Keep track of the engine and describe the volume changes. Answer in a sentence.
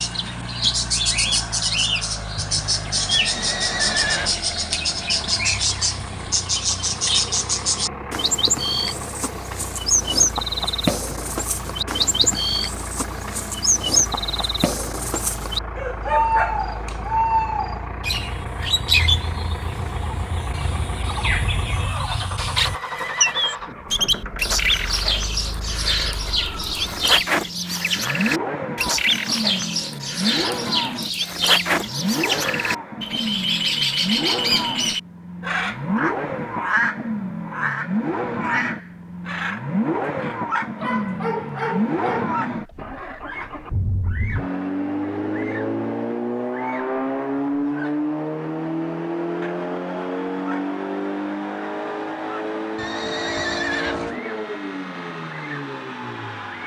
The volume of the engine goes up.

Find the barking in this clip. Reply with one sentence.
You can hear the barking from 15.8 to 17.2 s and from 40.8 to 42.3 s.